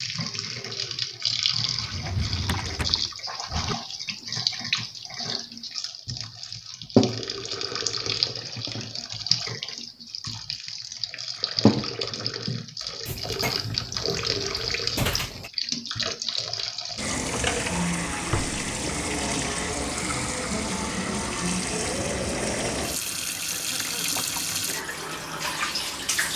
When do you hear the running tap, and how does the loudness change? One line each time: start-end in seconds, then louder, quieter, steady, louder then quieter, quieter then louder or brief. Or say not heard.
0.0-26.3 steady.